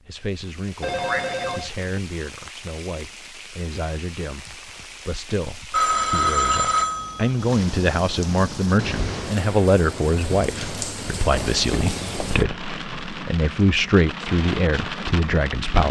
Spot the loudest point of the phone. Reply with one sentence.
The loudest moment of the phone is at 6 seconds.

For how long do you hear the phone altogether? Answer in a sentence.
The phone can be heard for 4 seconds in total.